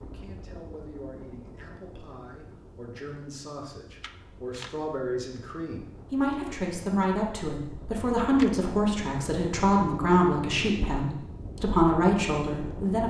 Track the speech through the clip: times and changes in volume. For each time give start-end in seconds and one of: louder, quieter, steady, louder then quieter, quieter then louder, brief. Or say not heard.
0.0-13.0 louder.